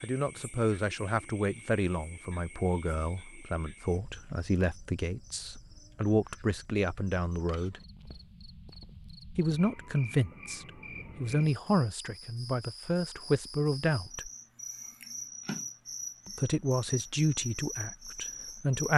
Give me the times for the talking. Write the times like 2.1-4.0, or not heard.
0.0-7.8, 9.3-14.3, 16.2-18.9.